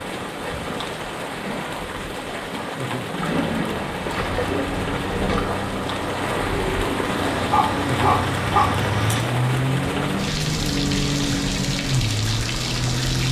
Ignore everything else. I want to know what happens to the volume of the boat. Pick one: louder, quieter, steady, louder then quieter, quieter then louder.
louder.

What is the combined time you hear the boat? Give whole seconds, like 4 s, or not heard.
13 s.